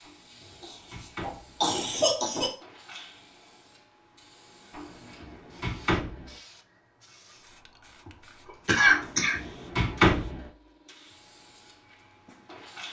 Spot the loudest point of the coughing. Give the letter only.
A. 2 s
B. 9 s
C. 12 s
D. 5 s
B.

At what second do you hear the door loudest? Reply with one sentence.
The volume of the door peaks at 10 seconds.